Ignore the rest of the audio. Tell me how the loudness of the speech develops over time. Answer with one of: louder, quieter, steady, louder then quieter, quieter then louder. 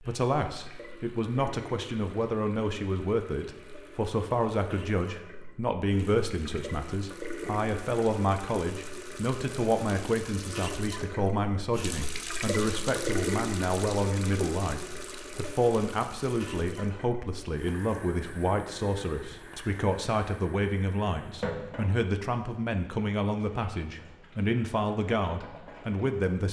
steady.